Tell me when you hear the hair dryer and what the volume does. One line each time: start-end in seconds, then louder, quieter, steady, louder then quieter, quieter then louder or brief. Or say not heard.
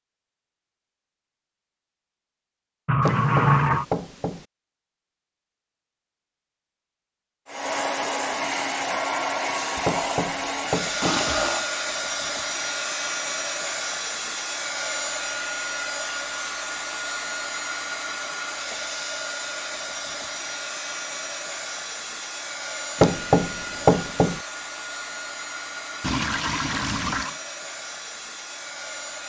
7.5-29.2 quieter.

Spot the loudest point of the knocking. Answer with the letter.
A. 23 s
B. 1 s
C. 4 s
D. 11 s
A.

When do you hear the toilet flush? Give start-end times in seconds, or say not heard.
2.9-3.9, 11.0-11.7, 26.0-27.4.